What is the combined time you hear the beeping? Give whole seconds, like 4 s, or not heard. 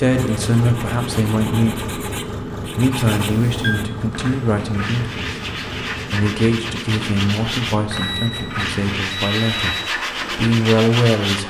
3 s.